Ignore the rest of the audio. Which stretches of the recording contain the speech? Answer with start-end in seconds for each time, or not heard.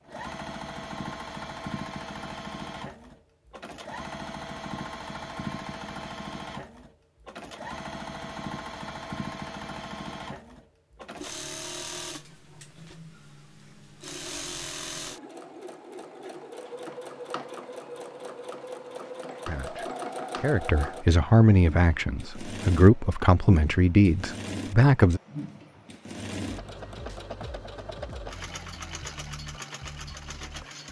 19.4-25.2.